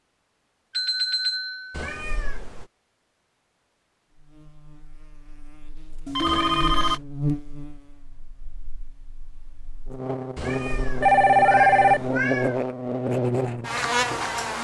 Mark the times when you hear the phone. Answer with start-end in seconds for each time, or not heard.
0.7-1.9, 6.0-7.0, 11.0-12.0.